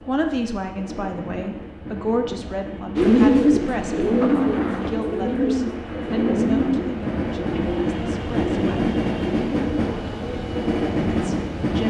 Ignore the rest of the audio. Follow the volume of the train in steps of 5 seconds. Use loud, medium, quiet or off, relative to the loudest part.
medium, loud, loud.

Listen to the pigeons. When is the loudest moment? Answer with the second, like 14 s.
3 s.